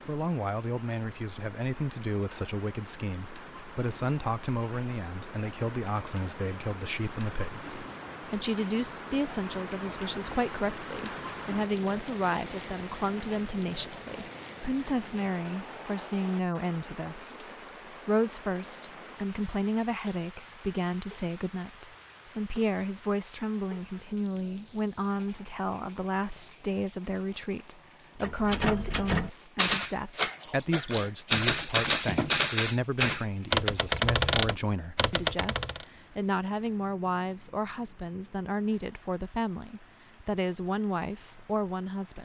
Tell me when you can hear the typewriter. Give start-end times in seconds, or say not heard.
28.2-35.9.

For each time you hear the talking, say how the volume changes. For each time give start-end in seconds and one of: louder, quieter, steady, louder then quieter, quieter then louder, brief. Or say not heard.
0.1-42.2 steady.